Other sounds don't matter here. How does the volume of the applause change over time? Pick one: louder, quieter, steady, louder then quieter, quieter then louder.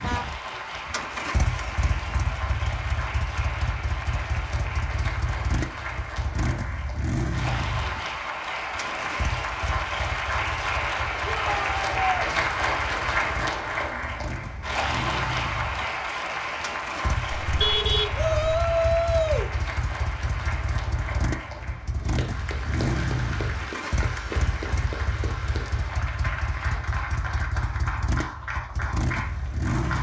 louder then quieter.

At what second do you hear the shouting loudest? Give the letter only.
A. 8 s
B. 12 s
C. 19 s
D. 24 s
C.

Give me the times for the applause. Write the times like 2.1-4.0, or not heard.
0.0-29.9.